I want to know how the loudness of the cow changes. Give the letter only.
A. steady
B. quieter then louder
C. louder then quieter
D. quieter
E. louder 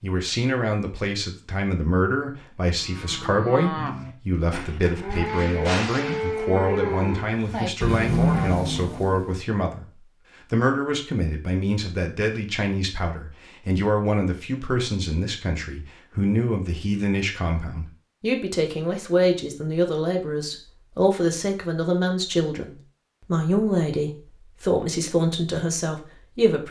E.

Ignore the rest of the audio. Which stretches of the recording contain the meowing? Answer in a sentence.
The meowing can't be heard in this clip.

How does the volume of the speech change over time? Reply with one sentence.
The volume of the speech stays about the same.